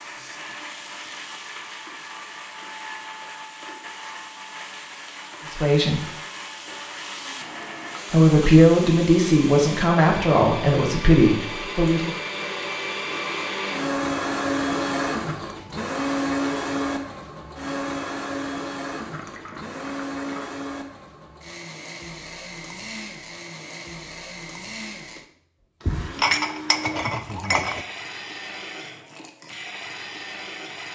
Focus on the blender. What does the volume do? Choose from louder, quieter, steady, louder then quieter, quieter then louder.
louder then quieter.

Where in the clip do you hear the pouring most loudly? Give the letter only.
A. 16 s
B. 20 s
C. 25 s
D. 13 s
B.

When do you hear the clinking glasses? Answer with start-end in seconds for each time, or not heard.
25.9-27.9.